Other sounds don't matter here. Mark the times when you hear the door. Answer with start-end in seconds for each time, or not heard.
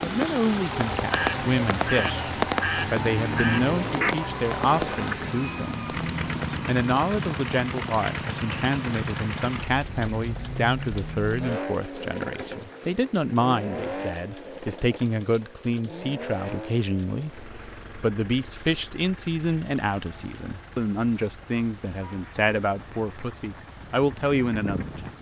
not heard.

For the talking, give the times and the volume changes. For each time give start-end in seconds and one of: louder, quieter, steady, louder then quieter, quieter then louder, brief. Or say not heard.
0.0-6.0 steady
6.7-25.1 steady.